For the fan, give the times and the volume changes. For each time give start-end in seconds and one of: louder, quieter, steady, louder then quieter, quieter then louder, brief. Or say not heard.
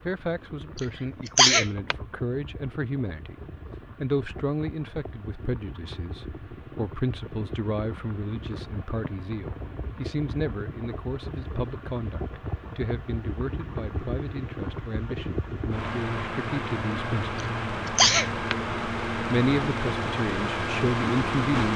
0.0-21.7 louder.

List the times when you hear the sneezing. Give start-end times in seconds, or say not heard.
0.8-1.9, 17.4-18.6.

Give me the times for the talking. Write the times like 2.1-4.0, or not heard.
0.0-3.4, 4.0-17.4, 19.2-21.7.